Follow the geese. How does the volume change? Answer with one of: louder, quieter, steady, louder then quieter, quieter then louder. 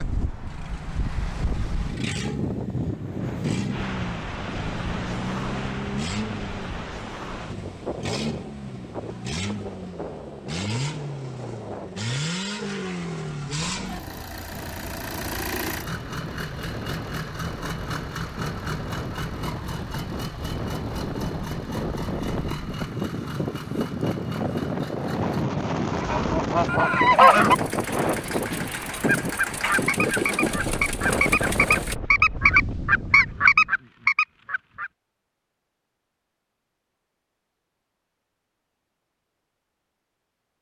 quieter then louder.